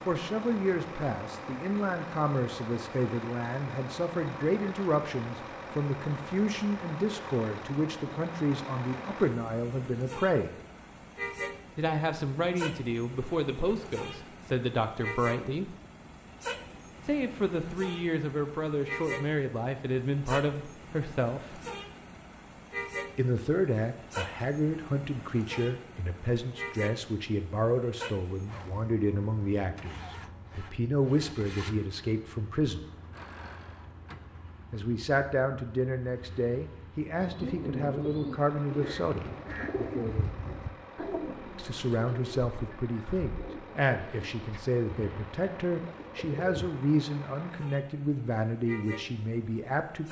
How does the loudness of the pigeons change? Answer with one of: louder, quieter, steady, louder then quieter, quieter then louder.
quieter.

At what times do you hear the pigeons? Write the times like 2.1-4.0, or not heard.
37.1-46.8.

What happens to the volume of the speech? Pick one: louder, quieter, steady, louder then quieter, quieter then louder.
steady.